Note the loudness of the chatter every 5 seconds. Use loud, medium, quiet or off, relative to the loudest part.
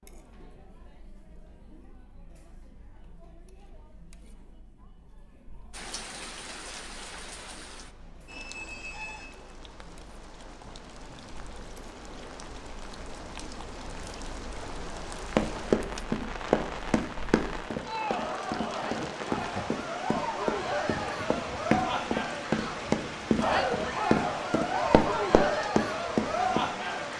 quiet, quiet, quiet, medium, loud, loud.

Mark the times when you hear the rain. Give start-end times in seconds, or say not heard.
5.7-27.1.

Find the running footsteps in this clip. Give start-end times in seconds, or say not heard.
15.3-26.6.